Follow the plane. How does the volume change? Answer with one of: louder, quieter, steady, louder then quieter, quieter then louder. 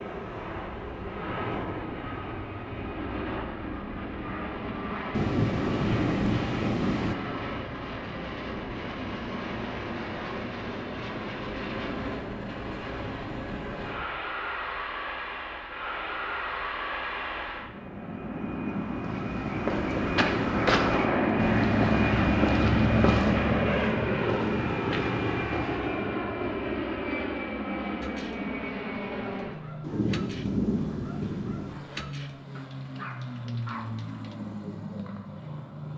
louder then quieter.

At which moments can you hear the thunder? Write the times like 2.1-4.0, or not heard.
5.1-7.2, 29.8-31.8.